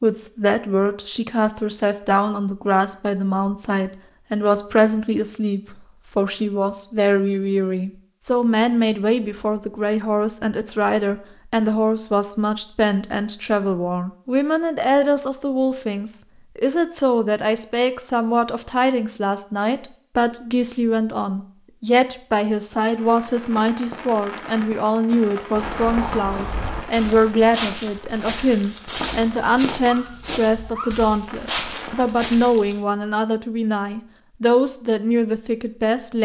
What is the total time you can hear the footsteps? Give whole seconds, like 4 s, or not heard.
7 s.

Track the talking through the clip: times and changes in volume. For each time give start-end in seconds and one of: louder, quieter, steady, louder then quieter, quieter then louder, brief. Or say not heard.
0.0-36.2 steady.